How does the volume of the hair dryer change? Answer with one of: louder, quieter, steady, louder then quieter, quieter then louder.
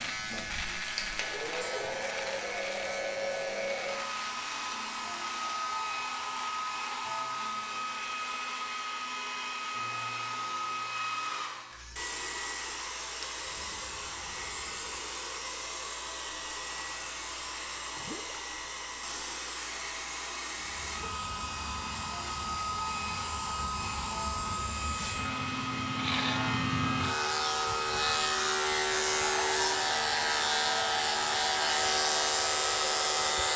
steady.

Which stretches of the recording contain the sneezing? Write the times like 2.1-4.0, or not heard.
1.4-1.9.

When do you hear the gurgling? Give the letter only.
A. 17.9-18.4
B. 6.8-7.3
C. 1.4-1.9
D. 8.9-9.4
A.